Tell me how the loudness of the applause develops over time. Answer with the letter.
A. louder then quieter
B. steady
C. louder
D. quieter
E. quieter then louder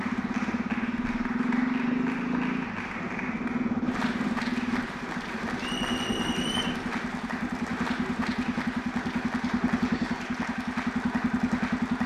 B.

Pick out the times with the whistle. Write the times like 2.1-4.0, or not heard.
5.5-6.8.